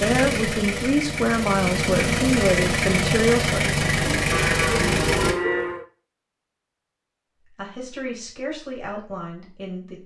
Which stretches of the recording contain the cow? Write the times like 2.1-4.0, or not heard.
4.3-5.8.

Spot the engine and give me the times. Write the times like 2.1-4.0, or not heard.
0.0-5.3.